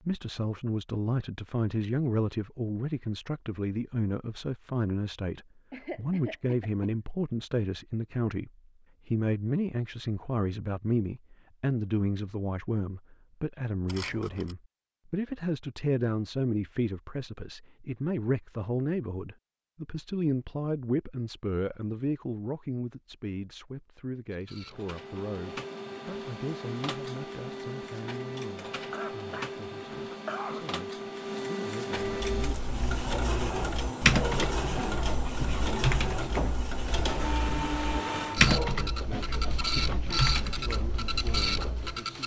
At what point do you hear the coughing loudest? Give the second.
30 s.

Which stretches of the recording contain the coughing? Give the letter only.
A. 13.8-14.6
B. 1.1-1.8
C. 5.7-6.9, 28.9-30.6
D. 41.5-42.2
C.